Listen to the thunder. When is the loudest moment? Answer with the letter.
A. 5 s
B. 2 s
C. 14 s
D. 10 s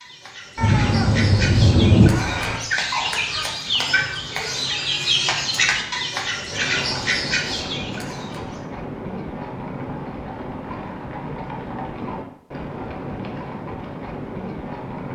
B.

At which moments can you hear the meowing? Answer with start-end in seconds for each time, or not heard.
0.6-2.6.